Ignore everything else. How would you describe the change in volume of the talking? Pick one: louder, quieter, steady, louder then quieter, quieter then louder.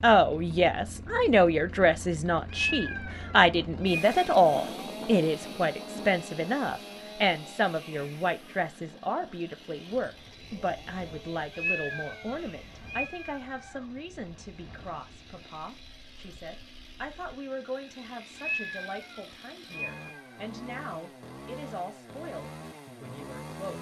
quieter.